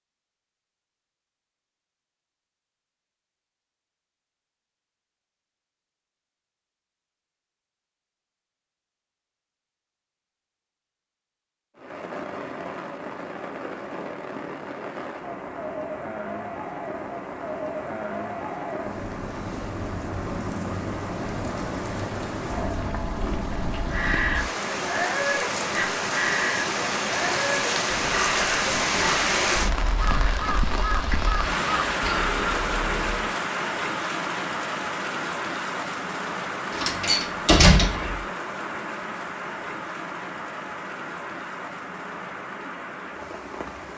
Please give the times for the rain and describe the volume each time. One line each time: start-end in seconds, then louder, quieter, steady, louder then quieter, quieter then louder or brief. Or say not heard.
11.8-43.9 louder then quieter.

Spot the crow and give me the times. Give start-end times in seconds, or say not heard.
23.9-33.2.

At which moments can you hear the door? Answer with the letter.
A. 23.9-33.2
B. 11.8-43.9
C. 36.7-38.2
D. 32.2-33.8
C.